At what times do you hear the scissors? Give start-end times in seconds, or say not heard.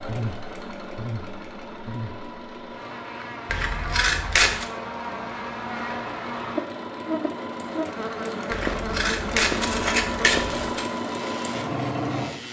3.5-4.7, 8.5-10.8.